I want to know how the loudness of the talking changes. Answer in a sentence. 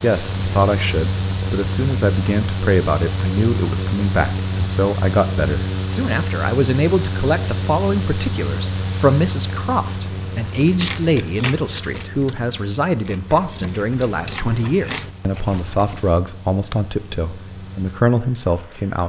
The loudness of the talking stays about the same.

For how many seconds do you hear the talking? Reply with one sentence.
The talking can be heard for 19 seconds in total.